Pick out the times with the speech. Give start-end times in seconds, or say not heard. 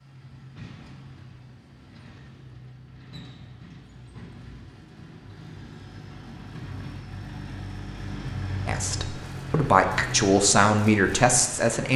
8.7-11.9.